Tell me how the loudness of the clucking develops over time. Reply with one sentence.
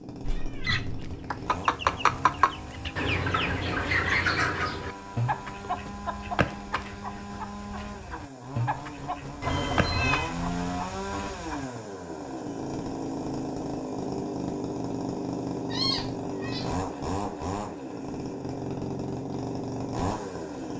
The loudness of the clucking goes down.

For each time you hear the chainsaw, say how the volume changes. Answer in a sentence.
The chainsaw can be heard from 0.0 to 20.7 s, getting louder.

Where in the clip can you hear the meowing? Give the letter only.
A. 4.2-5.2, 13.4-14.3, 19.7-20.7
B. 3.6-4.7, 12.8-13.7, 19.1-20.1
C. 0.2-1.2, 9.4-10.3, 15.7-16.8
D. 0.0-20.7
C.